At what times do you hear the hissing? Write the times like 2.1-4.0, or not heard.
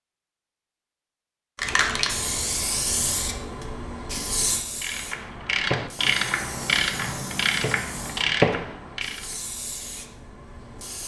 1.6-11.0.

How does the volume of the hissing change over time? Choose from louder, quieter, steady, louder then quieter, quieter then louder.
quieter.